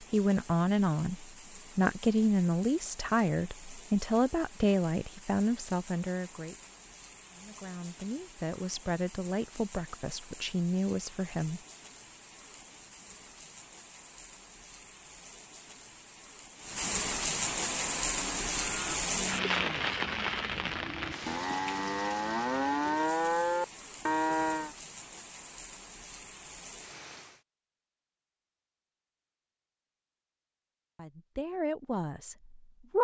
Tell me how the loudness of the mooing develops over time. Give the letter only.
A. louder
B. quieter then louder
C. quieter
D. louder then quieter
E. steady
A.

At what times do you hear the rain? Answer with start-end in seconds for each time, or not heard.
0.0-27.4.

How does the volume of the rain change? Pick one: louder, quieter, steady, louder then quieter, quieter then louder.
louder then quieter.